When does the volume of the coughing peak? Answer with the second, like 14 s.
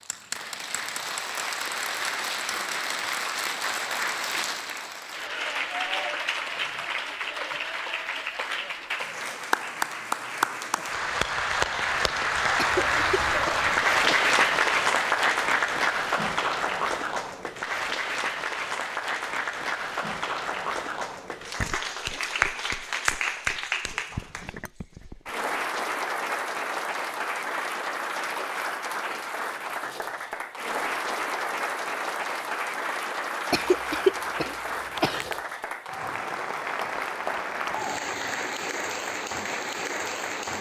34 s.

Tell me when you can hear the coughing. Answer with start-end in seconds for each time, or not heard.
12.6-14.2, 33.5-35.4.